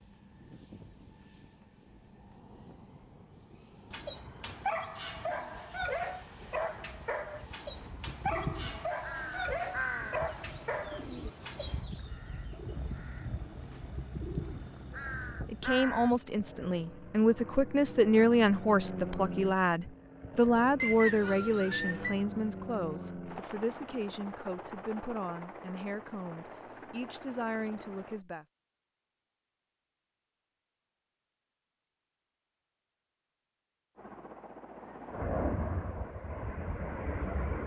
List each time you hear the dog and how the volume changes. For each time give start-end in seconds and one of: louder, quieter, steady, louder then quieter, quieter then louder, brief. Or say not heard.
3.9-11.9 steady.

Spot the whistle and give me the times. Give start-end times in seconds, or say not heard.
20.8-22.1.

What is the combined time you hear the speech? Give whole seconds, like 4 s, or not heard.
13 s.